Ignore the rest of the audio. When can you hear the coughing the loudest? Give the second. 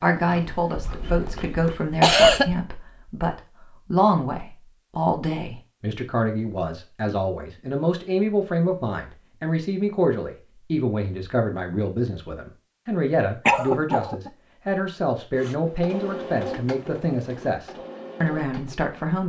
2 s.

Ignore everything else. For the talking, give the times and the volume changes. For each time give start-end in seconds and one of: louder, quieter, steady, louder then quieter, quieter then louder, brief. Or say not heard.
0.0-19.2 steady.